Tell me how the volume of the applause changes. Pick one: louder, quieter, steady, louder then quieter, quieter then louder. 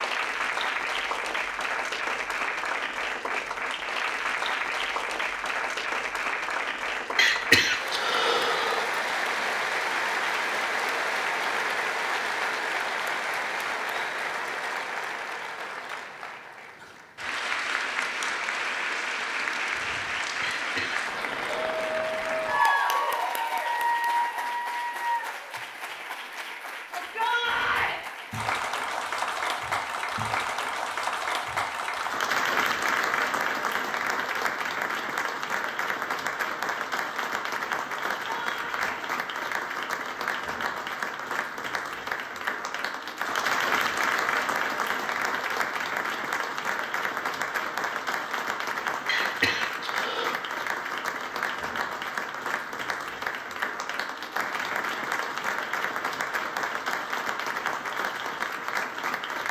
steady.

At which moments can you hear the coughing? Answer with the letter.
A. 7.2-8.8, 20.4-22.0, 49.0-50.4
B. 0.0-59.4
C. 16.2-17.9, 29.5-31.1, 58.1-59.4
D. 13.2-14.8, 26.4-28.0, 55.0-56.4
A.